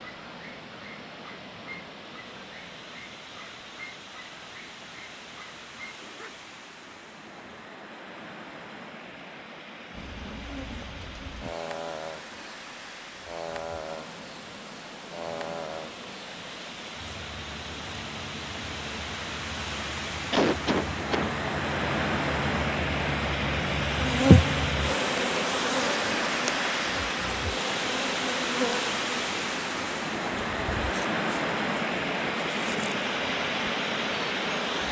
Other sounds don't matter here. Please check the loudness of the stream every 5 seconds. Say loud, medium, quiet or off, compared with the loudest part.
quiet, quiet, quiet, medium, loud, loud, loud.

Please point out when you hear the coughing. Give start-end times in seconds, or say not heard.
20.3-21.4.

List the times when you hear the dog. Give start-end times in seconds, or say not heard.
0.0-6.5.